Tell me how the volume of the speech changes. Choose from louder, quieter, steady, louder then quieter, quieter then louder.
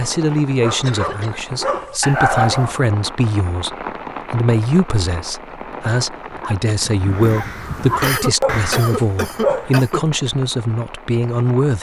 steady.